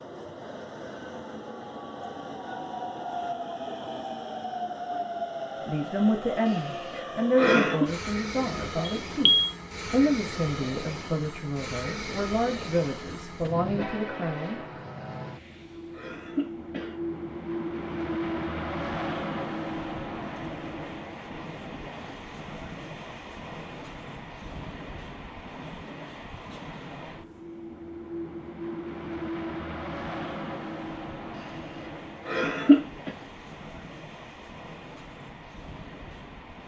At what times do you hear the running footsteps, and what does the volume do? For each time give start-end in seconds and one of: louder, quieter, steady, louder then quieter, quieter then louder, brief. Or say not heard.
not heard.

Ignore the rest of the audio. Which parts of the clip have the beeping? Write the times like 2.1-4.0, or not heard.
8.8-9.6.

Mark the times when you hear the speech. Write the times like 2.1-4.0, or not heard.
5.7-14.6.